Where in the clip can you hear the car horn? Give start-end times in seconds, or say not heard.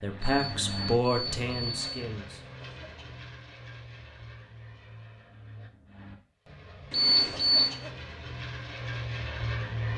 not heard.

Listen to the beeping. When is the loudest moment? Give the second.
7 s.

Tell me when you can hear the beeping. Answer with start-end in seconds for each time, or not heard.
0.2-1.9, 6.9-7.7.